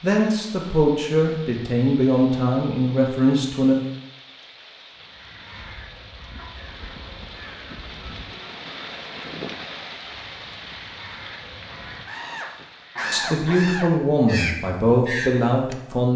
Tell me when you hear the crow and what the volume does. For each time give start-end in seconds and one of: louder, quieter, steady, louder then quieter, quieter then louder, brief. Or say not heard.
4.9-15.8 louder.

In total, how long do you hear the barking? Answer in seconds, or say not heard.
3 s.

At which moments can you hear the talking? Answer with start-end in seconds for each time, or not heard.
0.0-3.8, 13.1-16.1.